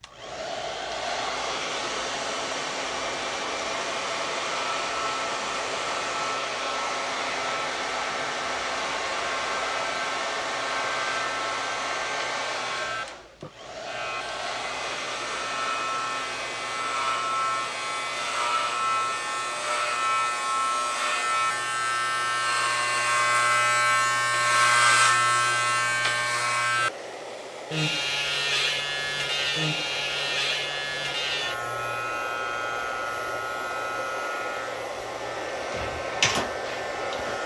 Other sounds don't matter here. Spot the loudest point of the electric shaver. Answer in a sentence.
The volume of the electric shaver peaks at 25 seconds.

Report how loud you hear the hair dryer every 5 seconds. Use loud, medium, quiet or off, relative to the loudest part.
loud, loud, loud, medium, medium, medium, medium, loud.